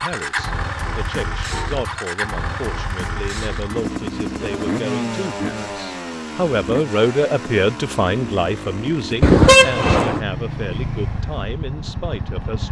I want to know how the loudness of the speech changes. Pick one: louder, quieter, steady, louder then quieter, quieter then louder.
louder then quieter.